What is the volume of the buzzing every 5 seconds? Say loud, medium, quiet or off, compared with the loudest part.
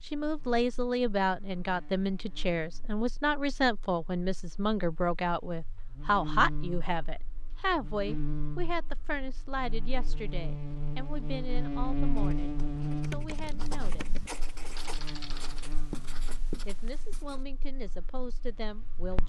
quiet, medium, loud, quiet.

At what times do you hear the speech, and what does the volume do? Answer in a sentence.
The speech can be heard from 0.0 to 14.2 s, getting quieter; and briefly from 16.5 to 19.2 s.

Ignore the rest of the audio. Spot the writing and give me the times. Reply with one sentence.
You can hear the writing from 12.2 to 17.4 s.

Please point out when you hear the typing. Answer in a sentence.
The typing can be heard from 12.9 to 15.8 s.